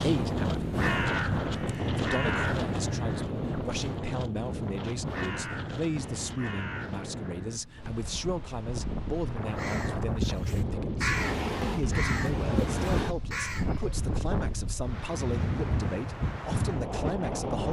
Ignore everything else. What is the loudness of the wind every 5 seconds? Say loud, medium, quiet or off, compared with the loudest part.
loud, medium, loud, loud.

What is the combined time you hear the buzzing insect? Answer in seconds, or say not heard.
not heard.